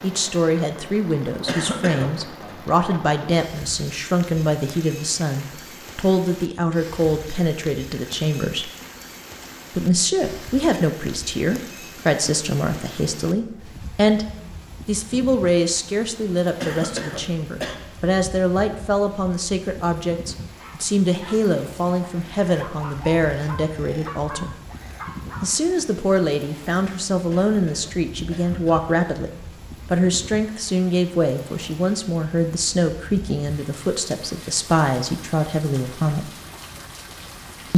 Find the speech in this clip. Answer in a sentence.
The speech can be heard from 0.0 to 8.7 s, from 9.7 to 14.2 s, from 14.8 to 24.6 s and from 25.4 to 36.3 s.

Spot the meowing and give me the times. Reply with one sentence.
You can't hear the meowing here.